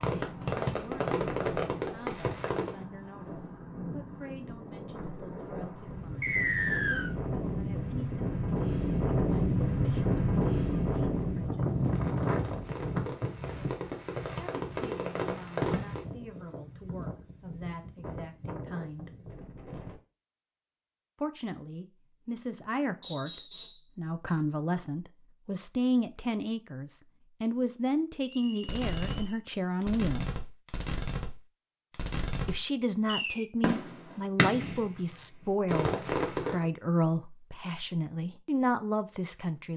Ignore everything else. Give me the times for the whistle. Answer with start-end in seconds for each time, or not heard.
6.2-7.1, 23.0-23.9, 28.2-29.4.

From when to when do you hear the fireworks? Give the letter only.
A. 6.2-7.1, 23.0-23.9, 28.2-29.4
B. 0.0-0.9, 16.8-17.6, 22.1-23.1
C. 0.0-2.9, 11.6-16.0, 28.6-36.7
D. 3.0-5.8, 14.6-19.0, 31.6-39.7
C.